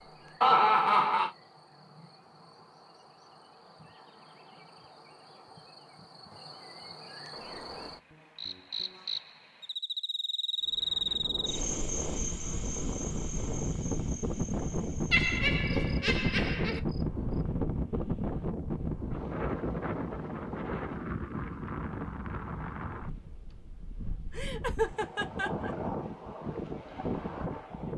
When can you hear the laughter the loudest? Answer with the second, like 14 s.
1 s.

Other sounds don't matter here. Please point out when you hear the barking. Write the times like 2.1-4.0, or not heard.
not heard.